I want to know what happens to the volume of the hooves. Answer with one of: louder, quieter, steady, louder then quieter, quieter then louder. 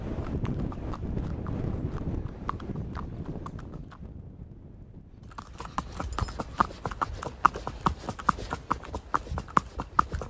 louder.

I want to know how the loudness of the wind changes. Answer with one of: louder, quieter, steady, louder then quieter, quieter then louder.
quieter.